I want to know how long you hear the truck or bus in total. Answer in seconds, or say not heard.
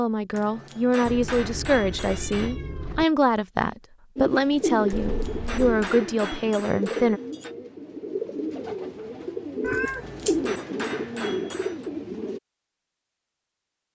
not heard.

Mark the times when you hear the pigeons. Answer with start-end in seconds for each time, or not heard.
4.2-12.4.